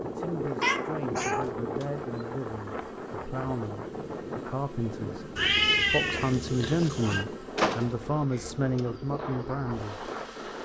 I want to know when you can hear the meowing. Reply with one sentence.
You can hear the meowing from 0.1 to 1.4 s and from 5.3 to 7.2 s.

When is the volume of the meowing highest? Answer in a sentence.
The loudest moment of the meowing is at 6 seconds.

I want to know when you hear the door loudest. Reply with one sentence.
The loudest moment of the door is at 8 seconds.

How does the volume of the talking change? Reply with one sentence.
The volume of the talking goes up.